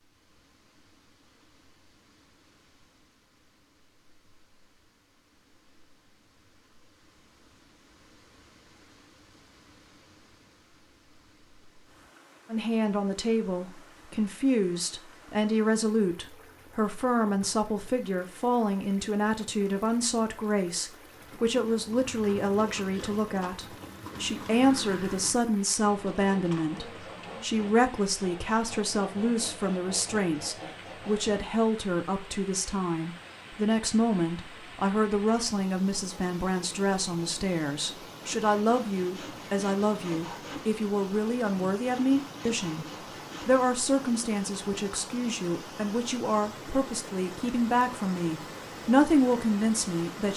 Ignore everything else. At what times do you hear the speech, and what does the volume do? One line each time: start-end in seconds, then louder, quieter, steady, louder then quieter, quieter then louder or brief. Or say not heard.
12.5-50.3 steady.